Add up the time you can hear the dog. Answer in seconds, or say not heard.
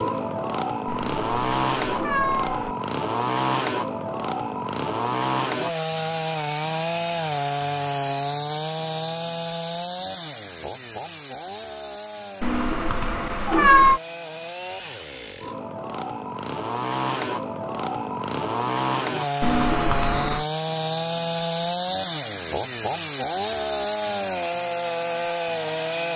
not heard.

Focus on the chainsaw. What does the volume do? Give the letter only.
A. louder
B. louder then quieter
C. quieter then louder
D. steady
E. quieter
C.